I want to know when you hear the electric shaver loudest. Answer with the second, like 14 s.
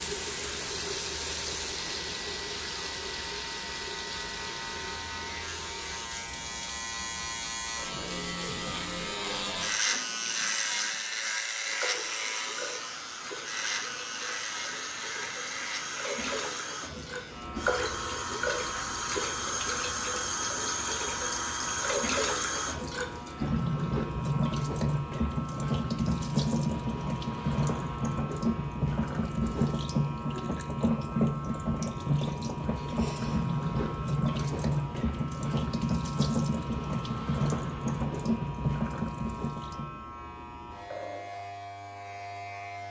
10 s.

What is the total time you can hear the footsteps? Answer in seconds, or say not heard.
not heard.